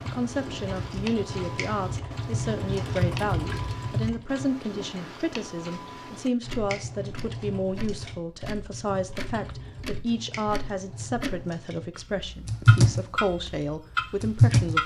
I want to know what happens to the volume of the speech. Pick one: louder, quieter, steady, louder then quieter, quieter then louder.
steady.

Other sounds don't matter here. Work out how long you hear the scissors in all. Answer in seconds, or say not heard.
5 s.